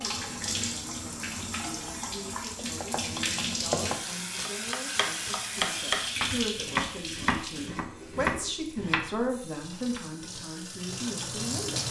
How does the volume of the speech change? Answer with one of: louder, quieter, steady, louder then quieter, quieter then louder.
louder.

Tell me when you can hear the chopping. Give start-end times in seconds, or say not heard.
2.5-10.0.